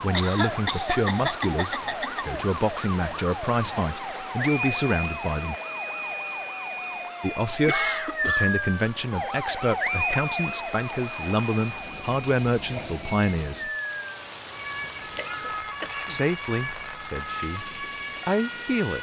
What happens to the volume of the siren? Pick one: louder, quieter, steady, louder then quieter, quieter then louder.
louder then quieter.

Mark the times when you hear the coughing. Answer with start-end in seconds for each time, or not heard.
0.1-2.2, 7.7-8.9, 15.0-16.2.